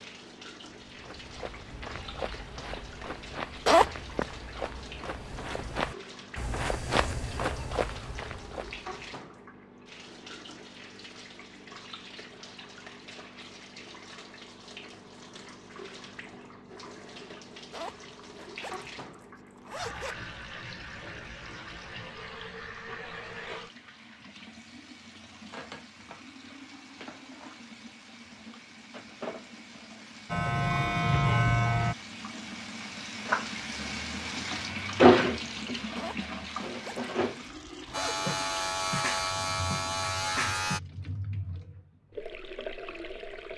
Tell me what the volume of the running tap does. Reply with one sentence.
The volume of the running tap goes up.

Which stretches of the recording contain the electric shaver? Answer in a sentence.
You can hear the electric shaver from 30.3 to 31.9 s and from 37.9 to 40.8 s.